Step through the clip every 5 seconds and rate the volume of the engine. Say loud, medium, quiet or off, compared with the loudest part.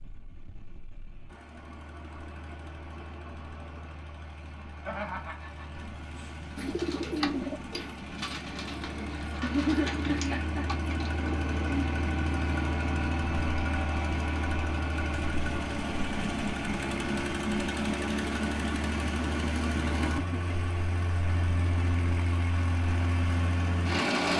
quiet, medium, loud, loud, loud.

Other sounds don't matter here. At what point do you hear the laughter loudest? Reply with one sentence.
The loudest moment of the laughter is at 10 seconds.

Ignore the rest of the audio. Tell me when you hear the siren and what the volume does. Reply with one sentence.
You can't hear the siren here.